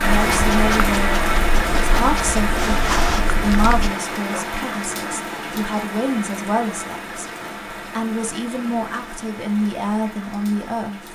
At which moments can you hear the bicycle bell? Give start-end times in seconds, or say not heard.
not heard.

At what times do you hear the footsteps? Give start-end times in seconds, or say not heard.
not heard.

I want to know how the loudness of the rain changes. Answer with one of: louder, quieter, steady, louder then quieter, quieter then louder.
quieter.